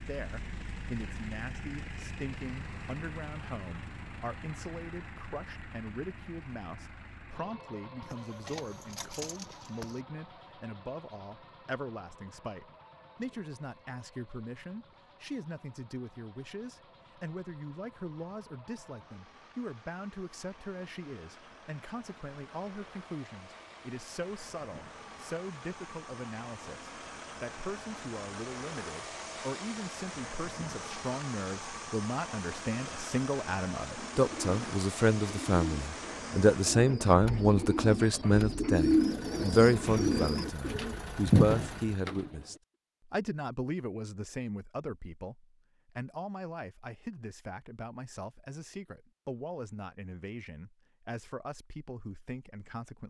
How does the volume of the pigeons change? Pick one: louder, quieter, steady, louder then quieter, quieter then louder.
louder.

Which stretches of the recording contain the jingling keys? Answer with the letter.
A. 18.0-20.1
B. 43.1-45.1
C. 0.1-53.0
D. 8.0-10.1
D.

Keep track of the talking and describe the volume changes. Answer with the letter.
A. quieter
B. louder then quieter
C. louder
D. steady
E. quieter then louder
B.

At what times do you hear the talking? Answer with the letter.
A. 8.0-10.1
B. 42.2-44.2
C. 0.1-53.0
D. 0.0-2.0
C.